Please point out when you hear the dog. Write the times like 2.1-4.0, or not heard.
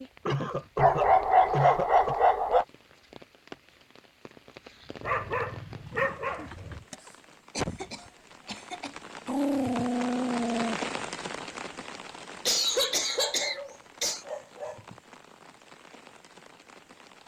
0.8-2.6, 5.0-6.8, 9.2-10.8, 13.1-14.8.